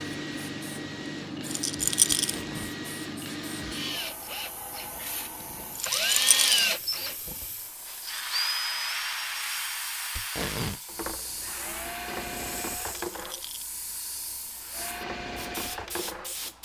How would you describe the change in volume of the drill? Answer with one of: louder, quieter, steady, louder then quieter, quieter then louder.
louder then quieter.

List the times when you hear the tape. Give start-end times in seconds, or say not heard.
2.1-2.8, 10.2-10.8.